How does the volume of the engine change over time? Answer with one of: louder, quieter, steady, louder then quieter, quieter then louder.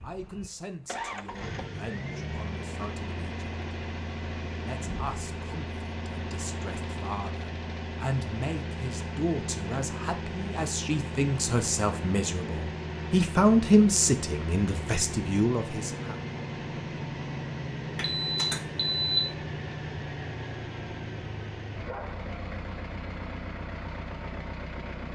steady.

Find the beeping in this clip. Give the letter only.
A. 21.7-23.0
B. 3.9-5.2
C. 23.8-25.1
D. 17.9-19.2
D.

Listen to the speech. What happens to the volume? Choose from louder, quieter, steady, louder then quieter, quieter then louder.
louder.